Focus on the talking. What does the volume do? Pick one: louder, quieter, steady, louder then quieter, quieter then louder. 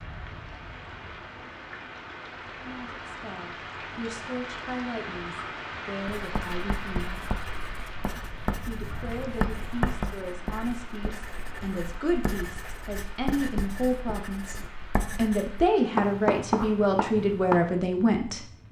louder.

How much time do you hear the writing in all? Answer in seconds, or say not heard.
12 s.